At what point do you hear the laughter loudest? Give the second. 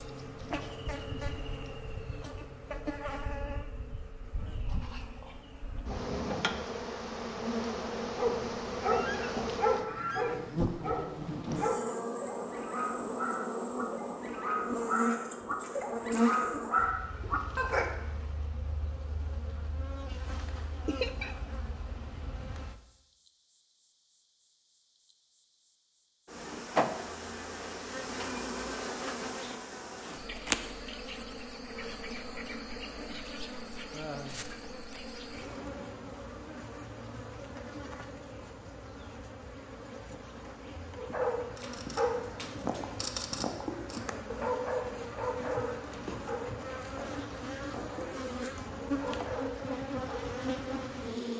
21 s.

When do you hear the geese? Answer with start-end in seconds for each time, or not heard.
8.9-10.8.